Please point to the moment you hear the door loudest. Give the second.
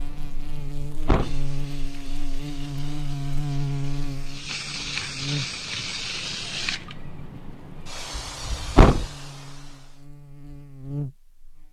9 s.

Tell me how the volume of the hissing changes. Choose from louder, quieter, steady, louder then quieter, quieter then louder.
louder then quieter.